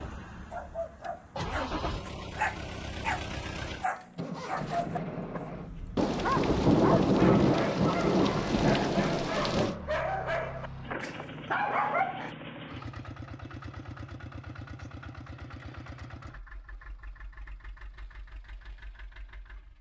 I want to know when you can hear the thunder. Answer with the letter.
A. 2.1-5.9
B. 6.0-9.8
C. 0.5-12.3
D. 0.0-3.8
B.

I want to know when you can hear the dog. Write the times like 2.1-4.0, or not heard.
0.5-12.3.